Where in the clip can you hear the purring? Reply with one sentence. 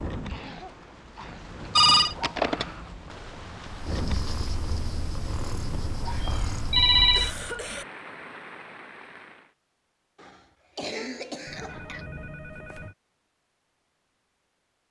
You can hear the purring from 3.6 to 7.5 s.